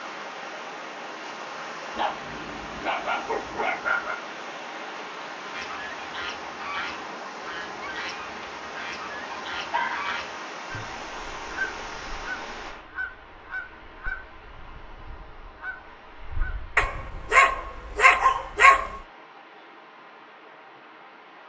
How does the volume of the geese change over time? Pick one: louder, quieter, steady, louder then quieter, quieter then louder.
quieter.